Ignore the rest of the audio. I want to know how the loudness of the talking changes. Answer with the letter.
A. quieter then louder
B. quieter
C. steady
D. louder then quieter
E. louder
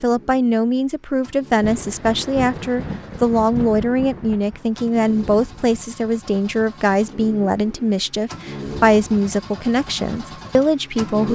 C.